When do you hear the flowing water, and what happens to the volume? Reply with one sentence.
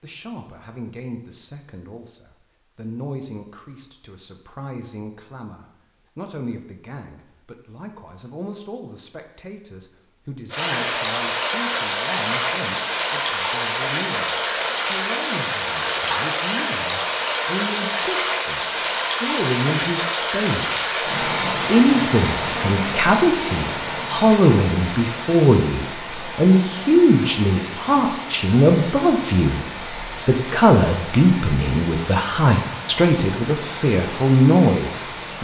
The flowing water can be heard from 10.5 to 35.3 s, getting quieter.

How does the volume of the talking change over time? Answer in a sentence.
The loudness of the talking goes up.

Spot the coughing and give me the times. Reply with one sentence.
The coughing can't be heard in this clip.